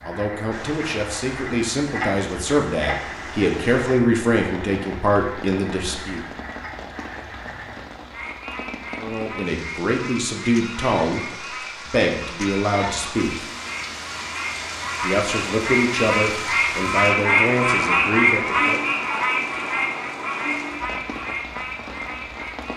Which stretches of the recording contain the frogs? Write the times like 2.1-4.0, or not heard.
0.0-22.7.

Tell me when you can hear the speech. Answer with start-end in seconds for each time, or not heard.
0.0-6.2, 8.9-13.4, 15.0-18.8.